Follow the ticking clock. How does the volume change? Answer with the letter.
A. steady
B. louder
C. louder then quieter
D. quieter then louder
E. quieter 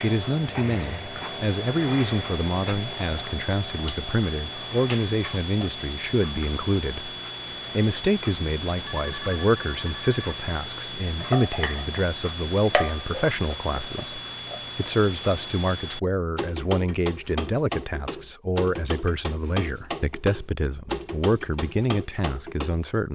A.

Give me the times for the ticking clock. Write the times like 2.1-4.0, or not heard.
0.0-22.9.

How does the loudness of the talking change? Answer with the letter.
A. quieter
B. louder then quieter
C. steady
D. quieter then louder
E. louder
C.